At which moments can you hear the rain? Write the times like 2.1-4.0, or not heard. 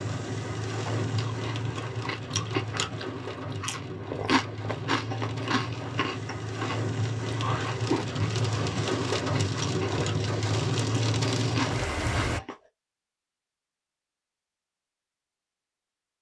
0.0-12.4.